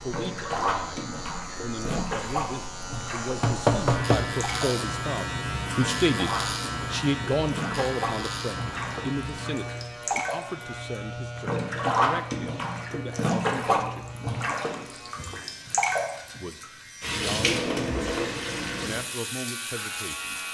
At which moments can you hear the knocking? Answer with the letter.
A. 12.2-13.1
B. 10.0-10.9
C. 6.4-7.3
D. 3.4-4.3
D.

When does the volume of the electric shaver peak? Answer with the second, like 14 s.
6 s.